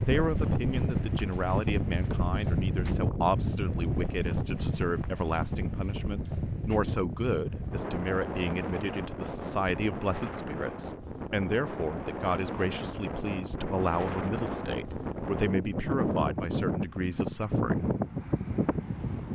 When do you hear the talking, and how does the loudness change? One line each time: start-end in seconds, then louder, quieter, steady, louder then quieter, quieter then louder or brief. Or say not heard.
0.0-17.9 steady.